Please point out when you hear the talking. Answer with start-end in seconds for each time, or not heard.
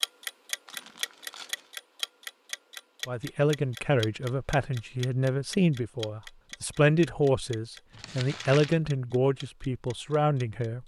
3.0-10.8.